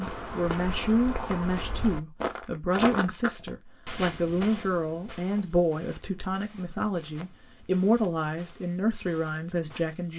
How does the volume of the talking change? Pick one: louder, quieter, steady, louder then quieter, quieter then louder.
steady.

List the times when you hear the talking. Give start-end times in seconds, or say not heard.
0.2-10.1.